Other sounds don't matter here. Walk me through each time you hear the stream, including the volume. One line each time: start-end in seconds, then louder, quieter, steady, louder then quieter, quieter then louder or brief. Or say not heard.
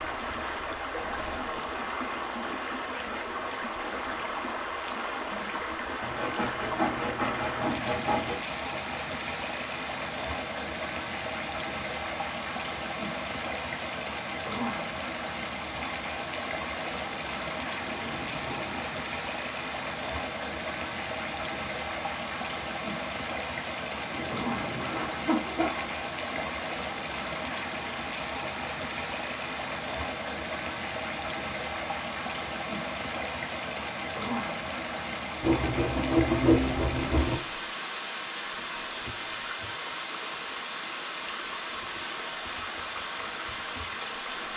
0.0-44.5 steady.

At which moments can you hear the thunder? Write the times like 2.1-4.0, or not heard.
17.9-18.9, 23.9-25.4.